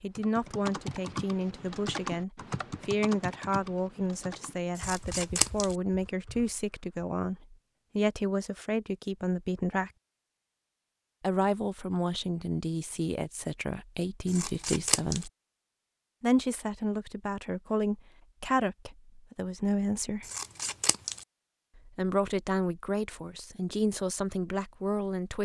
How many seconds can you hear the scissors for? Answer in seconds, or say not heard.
3 s.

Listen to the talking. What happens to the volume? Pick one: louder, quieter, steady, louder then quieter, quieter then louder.
steady.